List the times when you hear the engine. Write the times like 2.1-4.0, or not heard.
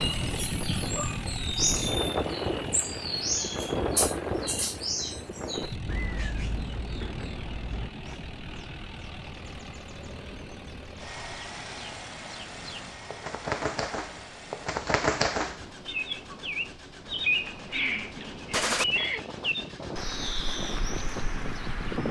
0.0-22.0.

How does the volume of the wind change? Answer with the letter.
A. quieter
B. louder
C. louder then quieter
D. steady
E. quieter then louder
E.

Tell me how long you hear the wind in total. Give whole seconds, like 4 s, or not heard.
22 s.